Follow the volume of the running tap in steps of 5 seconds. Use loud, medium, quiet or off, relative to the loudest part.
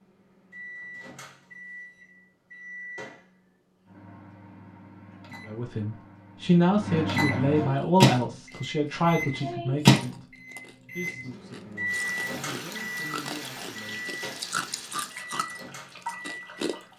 off, off, loud, loud.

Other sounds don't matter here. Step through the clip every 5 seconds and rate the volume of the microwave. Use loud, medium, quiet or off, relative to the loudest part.
quiet, loud, medium, quiet.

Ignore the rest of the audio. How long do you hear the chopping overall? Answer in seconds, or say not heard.
not heard.